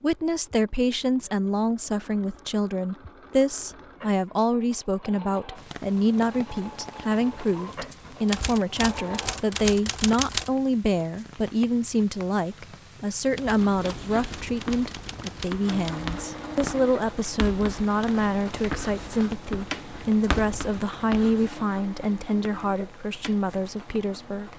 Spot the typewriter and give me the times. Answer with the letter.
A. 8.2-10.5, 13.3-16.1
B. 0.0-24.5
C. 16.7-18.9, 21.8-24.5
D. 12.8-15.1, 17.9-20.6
A.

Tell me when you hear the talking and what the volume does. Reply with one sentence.
You can hear the talking from 0.0 to 24.5 s, at a steady volume.